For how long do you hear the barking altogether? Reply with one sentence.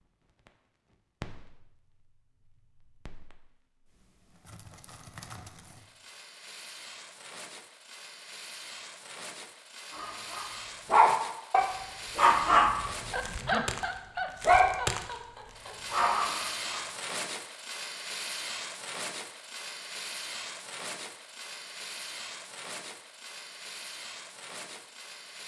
You can hear the barking for 7 seconds altogether.